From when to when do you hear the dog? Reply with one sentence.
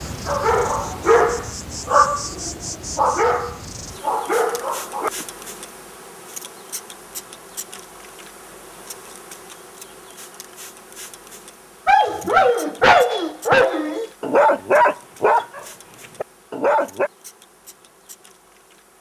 The dog can be heard from 0.1 to 5.2 s and from 11.8 to 17.1 s.